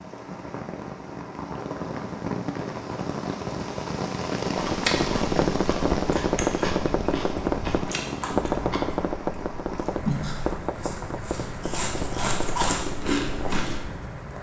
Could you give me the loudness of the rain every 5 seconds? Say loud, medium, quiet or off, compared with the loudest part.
loud, loud, medium.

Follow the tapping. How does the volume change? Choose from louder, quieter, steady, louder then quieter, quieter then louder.
quieter.